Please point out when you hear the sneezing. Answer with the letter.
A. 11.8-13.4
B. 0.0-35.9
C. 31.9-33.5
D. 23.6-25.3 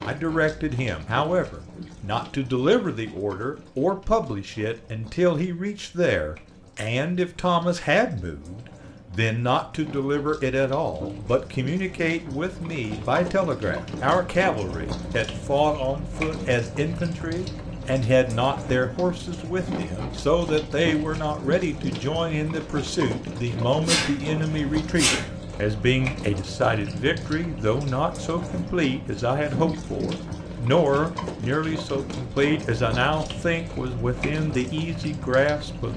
D.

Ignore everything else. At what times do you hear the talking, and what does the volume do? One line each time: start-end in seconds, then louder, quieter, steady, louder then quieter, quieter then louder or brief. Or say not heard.
0.0-35.9 steady.